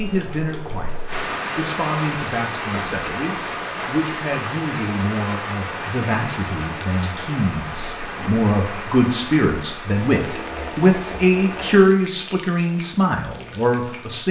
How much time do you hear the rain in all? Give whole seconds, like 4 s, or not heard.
14 s.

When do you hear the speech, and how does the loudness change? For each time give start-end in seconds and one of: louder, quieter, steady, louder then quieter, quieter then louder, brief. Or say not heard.
0.0-14.2 louder.